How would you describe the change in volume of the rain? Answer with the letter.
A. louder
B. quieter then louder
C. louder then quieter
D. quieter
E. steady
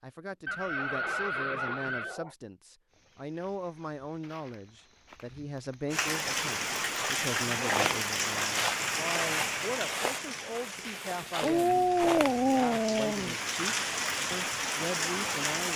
B.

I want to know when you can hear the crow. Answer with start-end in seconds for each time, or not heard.
not heard.